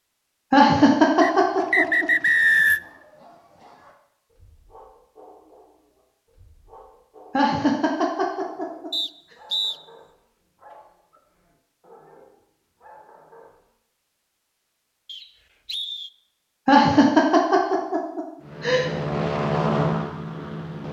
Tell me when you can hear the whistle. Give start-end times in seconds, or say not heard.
1.2-2.8, 8.9-9.8, 15.1-16.1.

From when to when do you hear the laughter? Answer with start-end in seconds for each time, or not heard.
0.5-2.0, 7.3-8.9, 16.6-18.9.